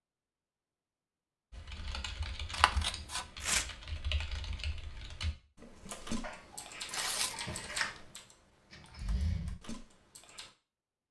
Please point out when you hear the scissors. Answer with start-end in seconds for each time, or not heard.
2.5-3.2, 6.2-8.0.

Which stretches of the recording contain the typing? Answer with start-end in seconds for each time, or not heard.
1.5-10.5.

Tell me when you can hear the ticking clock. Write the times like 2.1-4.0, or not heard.
not heard.